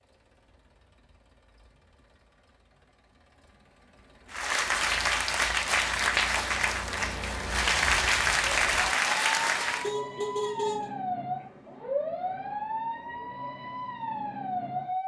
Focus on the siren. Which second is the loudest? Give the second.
12 s.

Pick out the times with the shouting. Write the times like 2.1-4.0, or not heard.
not heard.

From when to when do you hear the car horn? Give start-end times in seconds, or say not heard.
9.8-10.9.